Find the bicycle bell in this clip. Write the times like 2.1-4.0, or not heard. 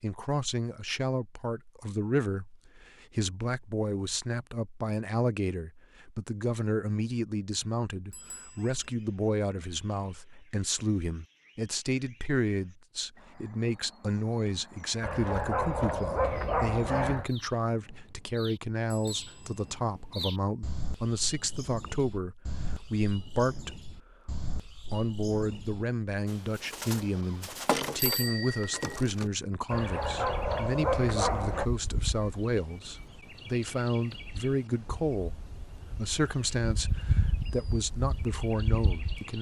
8.1-8.9, 18.9-19.7, 27.9-29.0.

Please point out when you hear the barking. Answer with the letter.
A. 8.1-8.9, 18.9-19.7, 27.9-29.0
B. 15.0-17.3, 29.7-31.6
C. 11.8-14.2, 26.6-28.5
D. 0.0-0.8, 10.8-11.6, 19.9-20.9
B.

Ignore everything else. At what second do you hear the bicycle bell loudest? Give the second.
28 s.